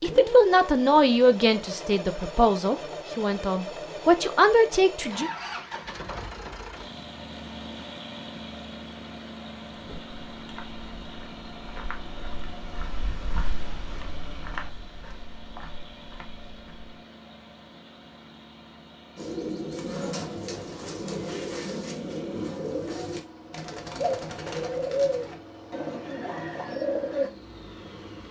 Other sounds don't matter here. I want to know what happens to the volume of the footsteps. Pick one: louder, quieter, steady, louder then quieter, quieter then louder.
louder then quieter.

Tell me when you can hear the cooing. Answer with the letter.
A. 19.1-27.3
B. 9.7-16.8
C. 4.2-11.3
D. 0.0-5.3
A.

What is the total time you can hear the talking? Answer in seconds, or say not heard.
5 s.